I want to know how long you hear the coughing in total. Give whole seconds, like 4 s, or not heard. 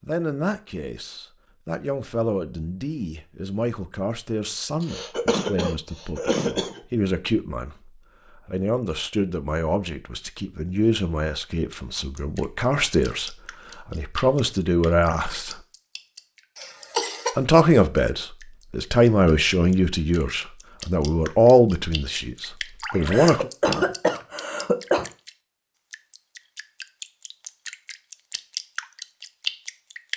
5 s.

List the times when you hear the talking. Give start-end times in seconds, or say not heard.
0.0-15.6, 17.4-23.5.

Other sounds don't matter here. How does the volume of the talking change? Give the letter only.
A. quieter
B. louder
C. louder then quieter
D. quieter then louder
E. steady
B.